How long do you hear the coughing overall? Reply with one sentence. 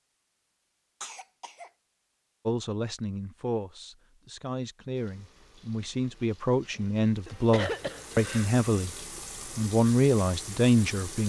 The coughing can be heard for 2 seconds in total.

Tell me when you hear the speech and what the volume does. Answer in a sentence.
You can hear the speech from 2.5 to 8.9 s, getting louder; and briefly from 9.6 to 11.2 s.